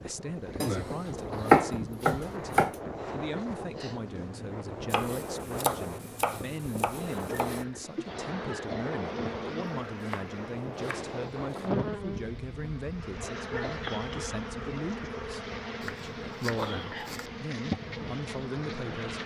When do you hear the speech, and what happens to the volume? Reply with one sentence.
You can hear the speech from 0.0 to 19.2 s, at a steady volume.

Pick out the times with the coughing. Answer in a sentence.
You can hear the coughing from 3.0 to 3.6 s, from 7.0 to 8.9 s and from 13.2 to 13.9 s.